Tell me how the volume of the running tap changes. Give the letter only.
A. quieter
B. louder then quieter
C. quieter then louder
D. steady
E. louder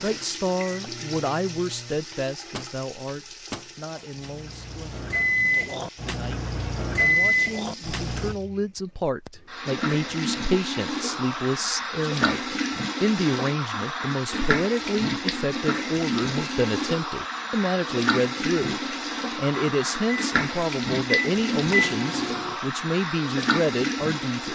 E.